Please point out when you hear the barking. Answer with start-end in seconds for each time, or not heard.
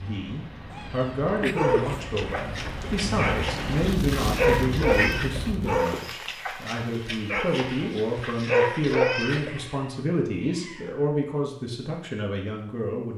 1.4-9.6.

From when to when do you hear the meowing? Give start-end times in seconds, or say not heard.
0.7-2.0, 4.8-5.2, 9.4-11.2.